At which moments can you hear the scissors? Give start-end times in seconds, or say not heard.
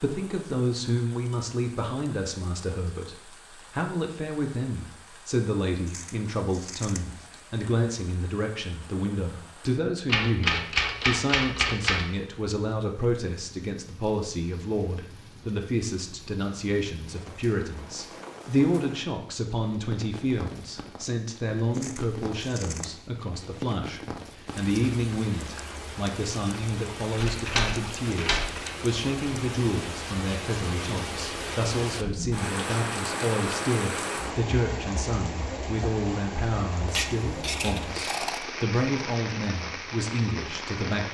5.8-7.4, 21.7-22.9, 36.9-38.5.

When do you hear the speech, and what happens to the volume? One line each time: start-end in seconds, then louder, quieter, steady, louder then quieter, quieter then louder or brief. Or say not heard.
0.0-41.0 steady.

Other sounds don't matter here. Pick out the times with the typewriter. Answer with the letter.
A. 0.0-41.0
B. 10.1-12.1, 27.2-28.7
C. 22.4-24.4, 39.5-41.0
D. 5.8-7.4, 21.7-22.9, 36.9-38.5
B.